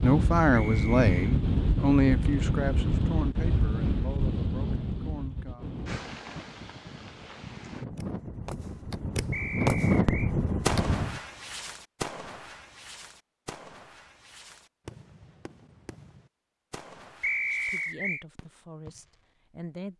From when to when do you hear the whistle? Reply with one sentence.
The whistle can be heard from 0.5 to 1.4 s, from 9.3 to 10.3 s and from 17.2 to 18.2 s.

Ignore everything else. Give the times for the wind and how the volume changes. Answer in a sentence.
You can hear the wind from 0.0 to 11.2 s, getting quieter then louder.